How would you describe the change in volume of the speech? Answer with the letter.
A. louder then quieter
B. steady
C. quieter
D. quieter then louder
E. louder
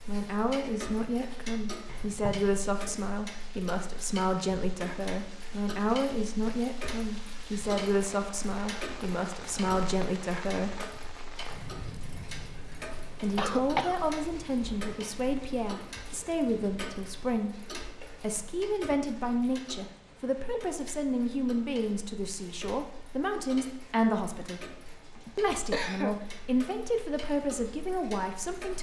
B.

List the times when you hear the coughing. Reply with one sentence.
The coughing can be heard from 1.9 to 2.5 s, from 13.3 to 13.9 s and from 25.1 to 26.2 s.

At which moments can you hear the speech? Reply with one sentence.
The speech can be heard from 0.1 to 10.8 s, from 13.2 to 17.6 s, from 18.2 to 24.6 s and from 25.4 to 28.7 s.